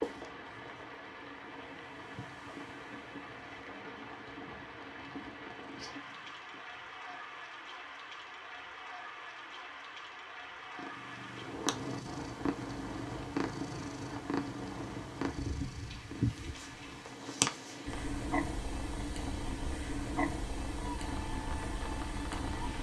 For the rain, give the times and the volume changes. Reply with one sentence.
The rain can be heard from 0.0 to 22.7 s, at a steady volume.